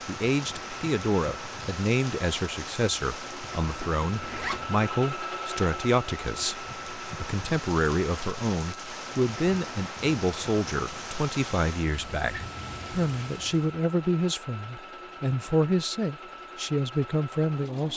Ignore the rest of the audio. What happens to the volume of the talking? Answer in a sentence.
The loudness of the talking stays about the same.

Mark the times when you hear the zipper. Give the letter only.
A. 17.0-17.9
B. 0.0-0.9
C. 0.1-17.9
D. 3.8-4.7
D.